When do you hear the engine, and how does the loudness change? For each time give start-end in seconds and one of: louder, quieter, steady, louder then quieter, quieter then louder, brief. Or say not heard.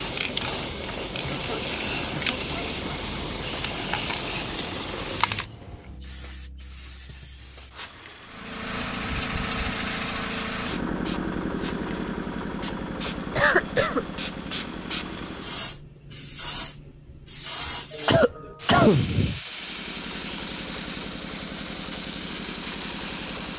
0.0-5.7 steady
8.2-15.8 quieter
19.4-23.5 steady.